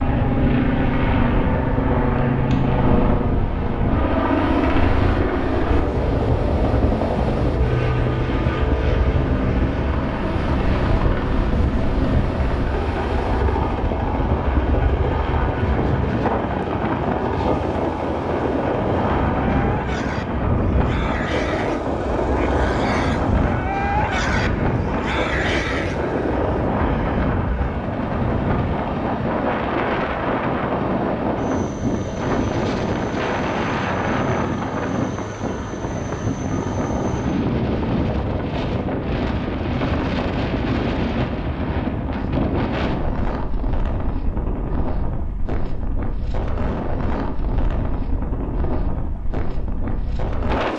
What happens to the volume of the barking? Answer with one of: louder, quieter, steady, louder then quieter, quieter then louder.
louder.